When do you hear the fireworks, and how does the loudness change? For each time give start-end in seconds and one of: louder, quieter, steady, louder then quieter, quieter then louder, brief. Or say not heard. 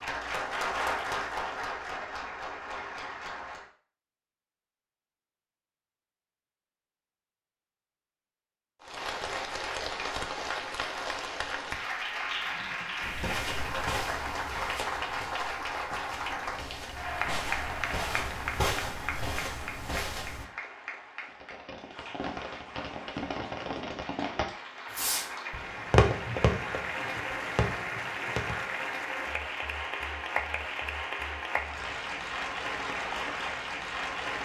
21.2-28.6 louder then quieter.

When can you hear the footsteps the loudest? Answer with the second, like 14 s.
19 s.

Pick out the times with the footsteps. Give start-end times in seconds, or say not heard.
13.0-20.4.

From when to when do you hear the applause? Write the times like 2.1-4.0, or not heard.
0.0-3.7, 8.8-34.4.